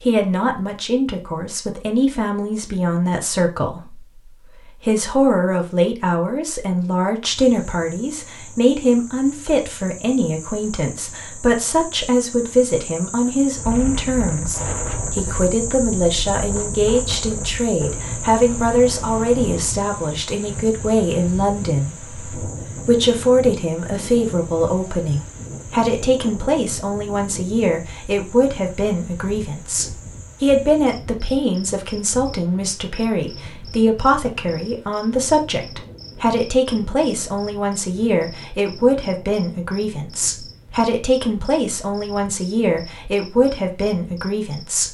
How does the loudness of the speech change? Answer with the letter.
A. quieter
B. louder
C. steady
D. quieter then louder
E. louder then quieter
C.